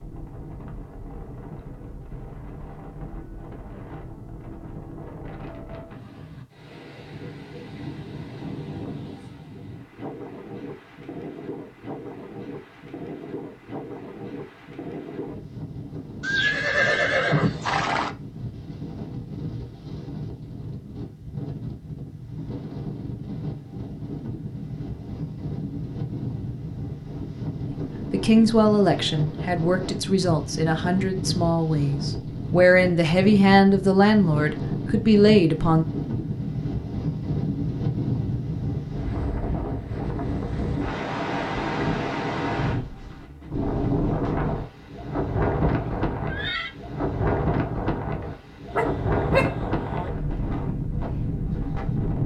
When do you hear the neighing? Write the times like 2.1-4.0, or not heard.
16.2-18.1, 45.6-46.7.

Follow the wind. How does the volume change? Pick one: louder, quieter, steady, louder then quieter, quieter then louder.
louder.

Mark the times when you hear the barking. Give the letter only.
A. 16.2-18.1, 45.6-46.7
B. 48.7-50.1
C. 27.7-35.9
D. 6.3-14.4
B.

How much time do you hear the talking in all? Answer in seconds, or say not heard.
8 s.